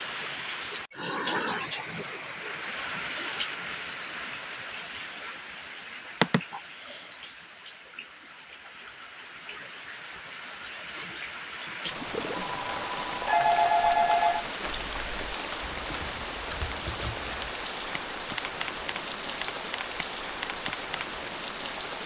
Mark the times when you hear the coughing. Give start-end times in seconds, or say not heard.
not heard.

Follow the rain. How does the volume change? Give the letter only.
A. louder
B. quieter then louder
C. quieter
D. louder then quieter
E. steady
B.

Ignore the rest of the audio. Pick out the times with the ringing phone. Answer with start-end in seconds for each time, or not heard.
12.3-14.4.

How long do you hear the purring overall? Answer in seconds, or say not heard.
not heard.